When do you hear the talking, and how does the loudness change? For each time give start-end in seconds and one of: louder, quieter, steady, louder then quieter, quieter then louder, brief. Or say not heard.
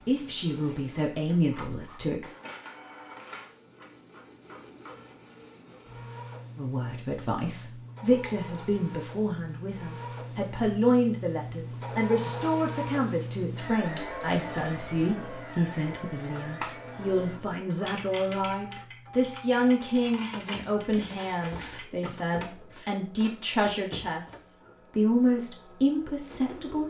0.1-2.2 brief
6.5-26.8 steady.